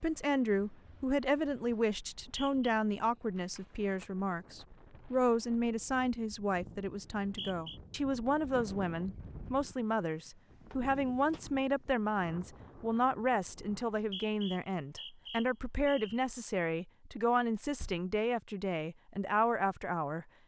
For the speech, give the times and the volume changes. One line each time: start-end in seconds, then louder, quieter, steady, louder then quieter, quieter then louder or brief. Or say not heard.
0.0-20.2 steady.